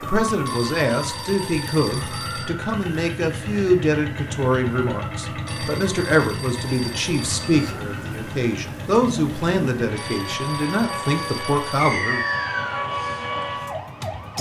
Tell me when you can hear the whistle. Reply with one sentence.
You can hear the whistle from 11.8 to 12.8 s.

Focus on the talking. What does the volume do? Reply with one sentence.
The volume of the talking stays about the same.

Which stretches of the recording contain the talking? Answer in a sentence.
The talking can be heard from 0.0 to 12.2 s.